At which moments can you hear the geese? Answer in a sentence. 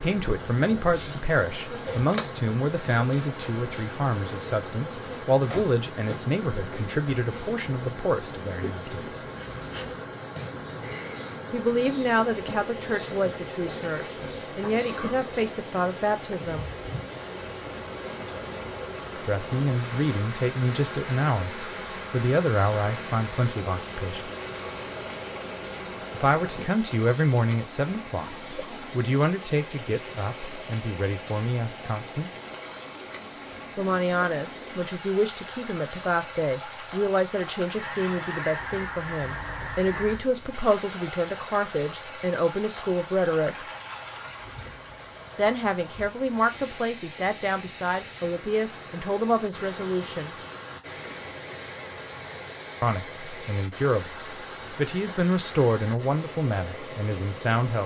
You can hear the geese from 37.8 to 40.2 s.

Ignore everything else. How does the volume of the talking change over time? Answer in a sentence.
The loudness of the talking stays about the same.